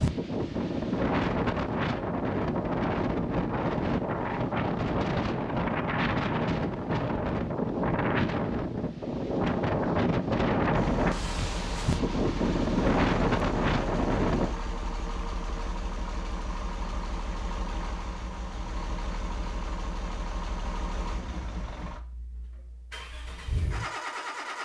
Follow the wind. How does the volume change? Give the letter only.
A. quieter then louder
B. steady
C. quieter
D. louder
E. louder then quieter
B.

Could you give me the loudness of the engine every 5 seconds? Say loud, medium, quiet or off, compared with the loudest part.
off, off, loud, loud, loud.